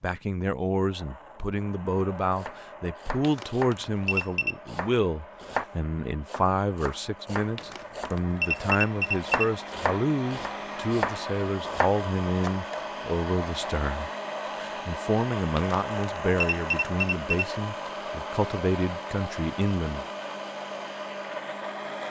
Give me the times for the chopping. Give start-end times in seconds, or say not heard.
2.3-5.7, 6.2-12.8.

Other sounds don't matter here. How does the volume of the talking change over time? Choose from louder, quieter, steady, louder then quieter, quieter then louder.
steady.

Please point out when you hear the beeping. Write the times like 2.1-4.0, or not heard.
3.2-4.5, 7.5-9.5, 15.6-17.4.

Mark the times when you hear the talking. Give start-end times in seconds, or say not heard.
0.0-20.1.